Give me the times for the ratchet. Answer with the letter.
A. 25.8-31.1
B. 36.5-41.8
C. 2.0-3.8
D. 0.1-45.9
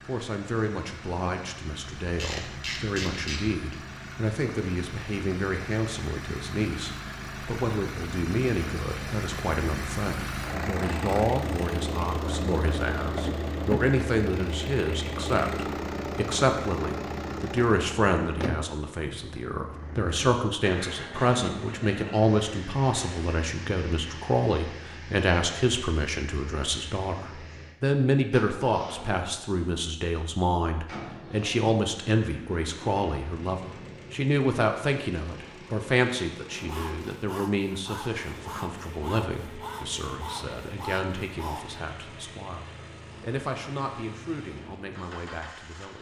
C.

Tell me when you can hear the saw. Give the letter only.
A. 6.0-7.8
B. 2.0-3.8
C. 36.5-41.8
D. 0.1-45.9
C.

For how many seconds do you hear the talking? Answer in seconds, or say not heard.
46 s.